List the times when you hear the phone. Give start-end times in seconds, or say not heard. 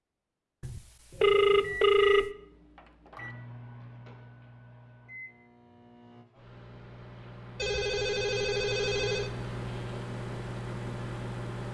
0.6-2.3, 7.5-9.3.